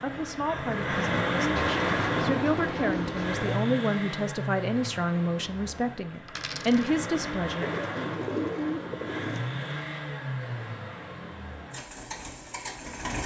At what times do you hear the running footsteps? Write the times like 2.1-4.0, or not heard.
not heard.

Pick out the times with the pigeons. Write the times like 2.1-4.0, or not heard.
1.6-3.5, 7.6-9.4.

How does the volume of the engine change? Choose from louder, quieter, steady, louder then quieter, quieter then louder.
quieter.